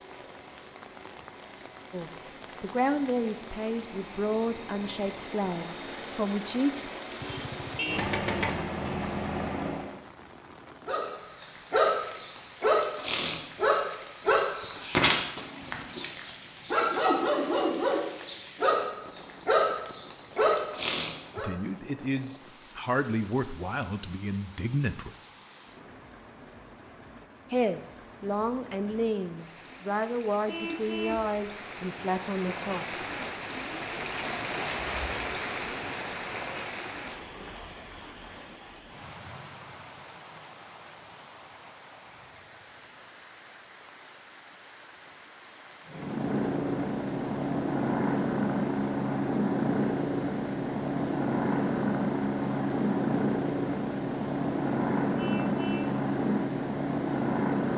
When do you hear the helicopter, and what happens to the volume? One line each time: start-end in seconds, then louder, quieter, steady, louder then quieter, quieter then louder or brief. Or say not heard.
0.0-10.0 louder
45.9-57.7 steady.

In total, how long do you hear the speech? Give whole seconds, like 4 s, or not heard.
14 s.